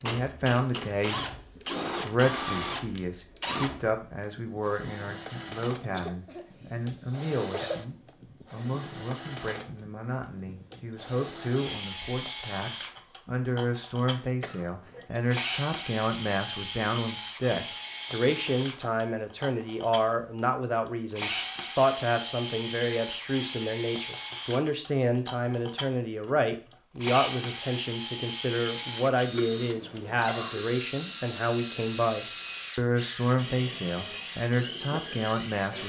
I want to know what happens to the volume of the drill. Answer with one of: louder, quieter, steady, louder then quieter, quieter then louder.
steady.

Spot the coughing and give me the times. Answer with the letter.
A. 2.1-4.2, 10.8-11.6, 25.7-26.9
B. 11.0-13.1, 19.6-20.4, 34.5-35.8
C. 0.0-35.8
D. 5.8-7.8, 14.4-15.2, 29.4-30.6
D.